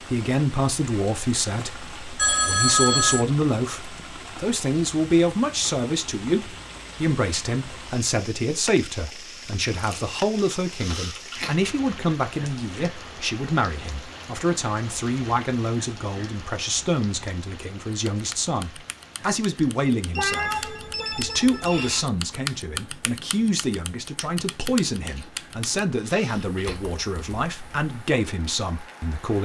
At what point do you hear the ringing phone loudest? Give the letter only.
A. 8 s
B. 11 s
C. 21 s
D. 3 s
D.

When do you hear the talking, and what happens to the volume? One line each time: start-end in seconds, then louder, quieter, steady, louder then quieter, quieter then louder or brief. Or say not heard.
0.1-29.3 steady.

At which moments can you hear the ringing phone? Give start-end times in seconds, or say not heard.
2.1-3.2, 20.1-22.1.